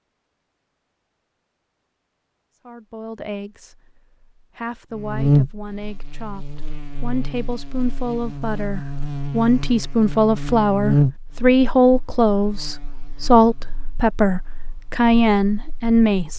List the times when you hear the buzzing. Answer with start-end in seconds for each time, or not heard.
4.9-16.3.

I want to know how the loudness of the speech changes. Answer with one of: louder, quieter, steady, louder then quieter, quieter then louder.
louder.